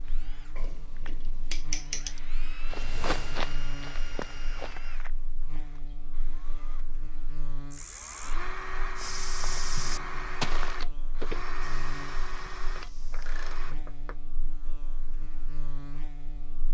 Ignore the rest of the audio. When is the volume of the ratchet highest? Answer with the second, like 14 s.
2 s.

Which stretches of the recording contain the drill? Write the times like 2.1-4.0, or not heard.
0.0-13.8.